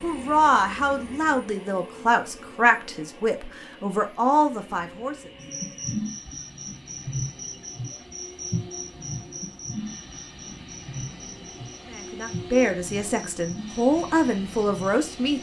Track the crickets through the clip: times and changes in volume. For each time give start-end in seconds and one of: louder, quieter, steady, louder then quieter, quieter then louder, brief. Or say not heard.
5.4-15.3 quieter.